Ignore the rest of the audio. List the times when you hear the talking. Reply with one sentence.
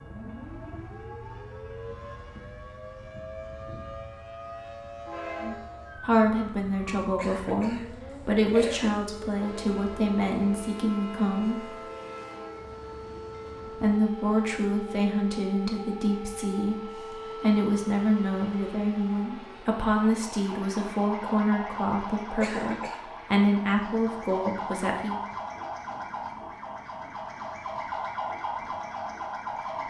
The talking can be heard from 5.4 to 11.8 s and from 13.8 to 25.1 s.